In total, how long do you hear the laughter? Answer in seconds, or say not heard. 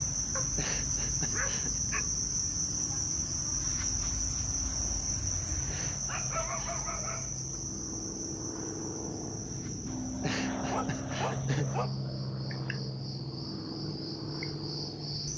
4 s.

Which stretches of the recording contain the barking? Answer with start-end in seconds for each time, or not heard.
0.3-2.1, 6.0-7.6, 10.7-11.9.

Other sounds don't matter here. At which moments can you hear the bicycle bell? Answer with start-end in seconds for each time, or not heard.
not heard.